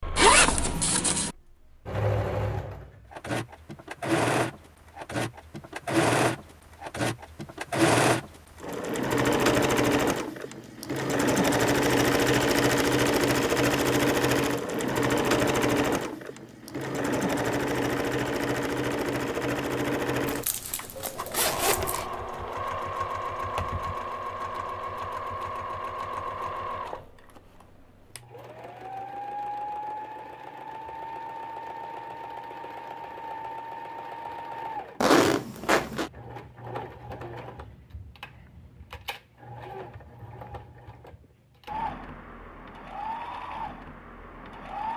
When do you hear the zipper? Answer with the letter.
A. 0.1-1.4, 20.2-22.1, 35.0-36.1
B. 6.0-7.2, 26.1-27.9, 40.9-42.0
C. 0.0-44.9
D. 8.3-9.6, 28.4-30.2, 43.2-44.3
A.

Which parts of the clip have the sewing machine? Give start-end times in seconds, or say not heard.
0.0-44.9.